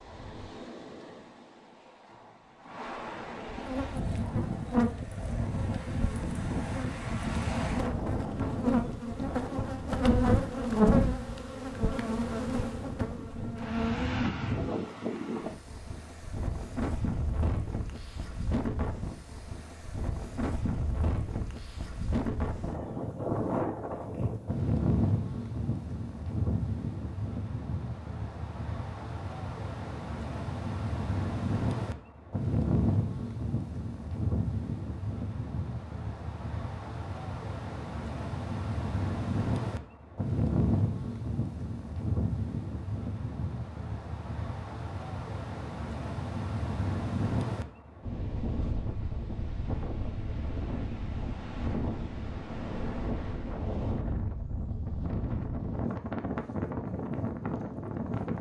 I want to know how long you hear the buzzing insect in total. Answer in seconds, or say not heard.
11 s.